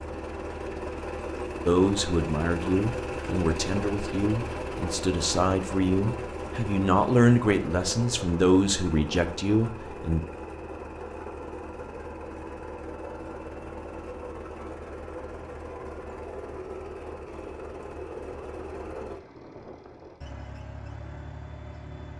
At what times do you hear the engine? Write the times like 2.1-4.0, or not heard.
0.0-22.1.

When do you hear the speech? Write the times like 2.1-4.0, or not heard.
1.6-10.2.